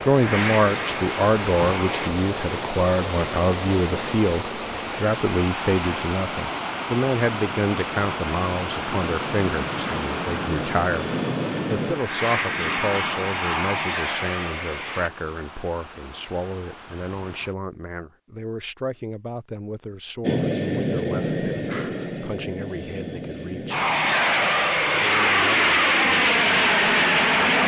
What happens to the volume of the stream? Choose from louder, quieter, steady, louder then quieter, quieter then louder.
quieter.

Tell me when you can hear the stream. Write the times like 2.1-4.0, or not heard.
0.0-17.6.